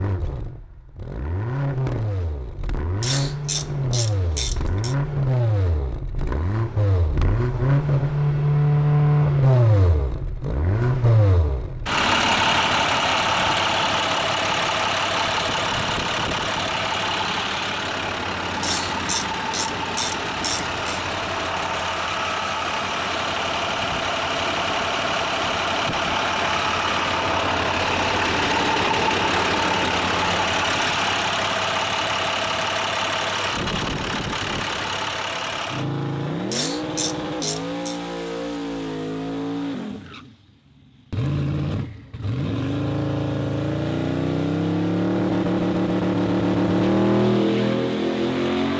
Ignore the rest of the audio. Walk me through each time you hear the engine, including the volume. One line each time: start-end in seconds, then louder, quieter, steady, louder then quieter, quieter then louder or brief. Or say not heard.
0.0-48.7 steady.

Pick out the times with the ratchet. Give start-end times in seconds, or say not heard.
3.0-5.0, 18.6-21.0, 36.5-38.0.